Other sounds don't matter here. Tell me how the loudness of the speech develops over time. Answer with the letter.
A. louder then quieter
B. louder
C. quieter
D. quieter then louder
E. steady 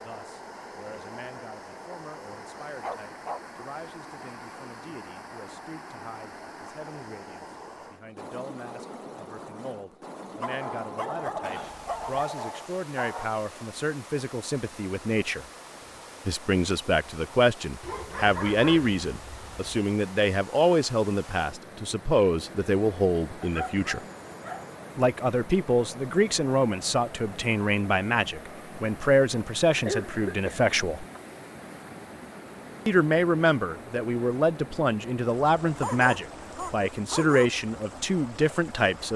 B.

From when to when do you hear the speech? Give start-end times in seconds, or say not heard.
0.0-15.4, 16.2-24.0, 24.9-31.1, 32.9-39.1.